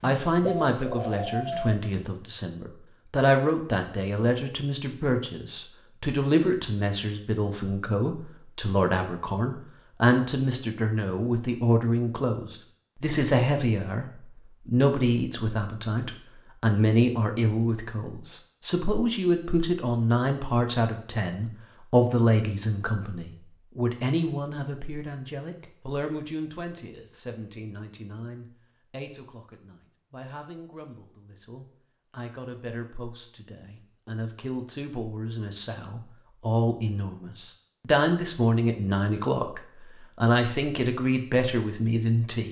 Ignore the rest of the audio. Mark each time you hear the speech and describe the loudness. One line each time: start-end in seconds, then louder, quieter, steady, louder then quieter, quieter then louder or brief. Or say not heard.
0.0-42.4 quieter then louder.